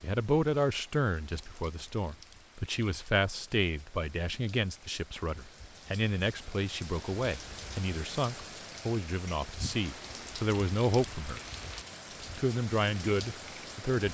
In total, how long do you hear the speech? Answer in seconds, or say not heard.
13 s.